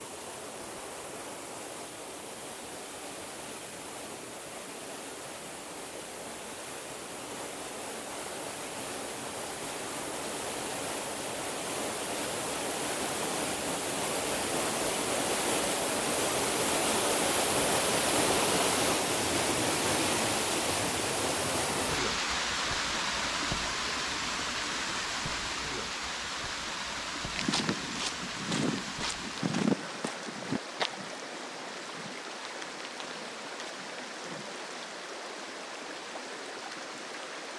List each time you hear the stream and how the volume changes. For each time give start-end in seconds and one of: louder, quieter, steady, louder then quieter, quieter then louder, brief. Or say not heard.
0.0-37.5 louder then quieter.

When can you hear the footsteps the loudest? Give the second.
30 s.